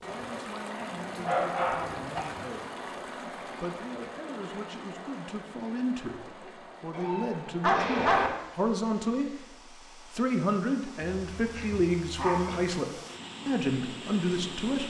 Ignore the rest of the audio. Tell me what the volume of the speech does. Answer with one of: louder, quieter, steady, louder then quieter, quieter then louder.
louder.